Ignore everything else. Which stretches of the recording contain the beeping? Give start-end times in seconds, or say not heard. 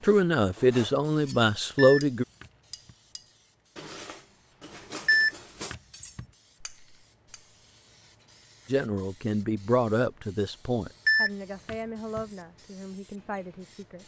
1.8-3.0, 5.0-6.2, 11.1-12.2.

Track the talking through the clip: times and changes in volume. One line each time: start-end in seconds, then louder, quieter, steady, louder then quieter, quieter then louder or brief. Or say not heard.
0.0-2.2 brief
8.7-14.0 quieter.